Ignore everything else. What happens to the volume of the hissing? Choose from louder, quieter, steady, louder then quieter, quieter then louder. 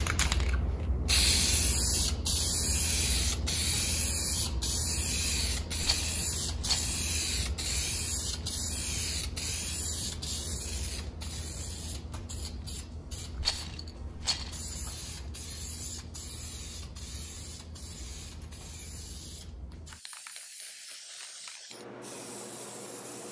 quieter.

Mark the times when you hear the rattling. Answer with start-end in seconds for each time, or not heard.
5.8-7.0, 13.4-14.6.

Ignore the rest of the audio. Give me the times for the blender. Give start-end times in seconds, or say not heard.
not heard.